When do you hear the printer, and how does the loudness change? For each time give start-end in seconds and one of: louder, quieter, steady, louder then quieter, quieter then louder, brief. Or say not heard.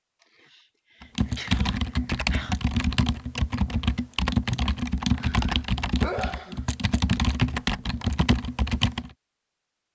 not heard.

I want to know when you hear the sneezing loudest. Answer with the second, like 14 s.
6 s.